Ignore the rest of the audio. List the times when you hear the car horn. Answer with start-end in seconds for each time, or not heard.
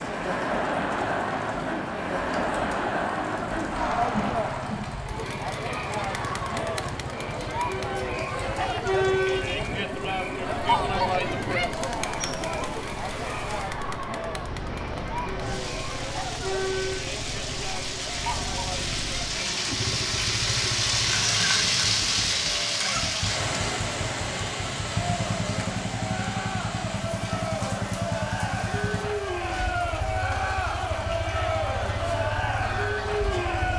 8.5-9.7.